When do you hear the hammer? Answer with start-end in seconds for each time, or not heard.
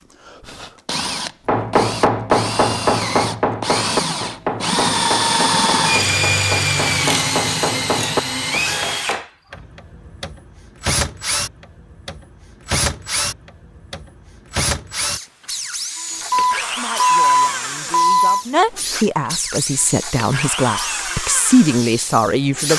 1.4-9.2.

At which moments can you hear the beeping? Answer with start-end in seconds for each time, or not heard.
16.3-18.4.